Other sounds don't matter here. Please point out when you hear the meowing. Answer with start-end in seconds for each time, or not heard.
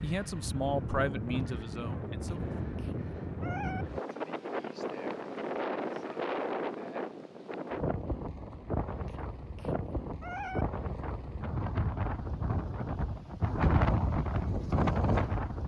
2.2-3.9, 9.1-10.7.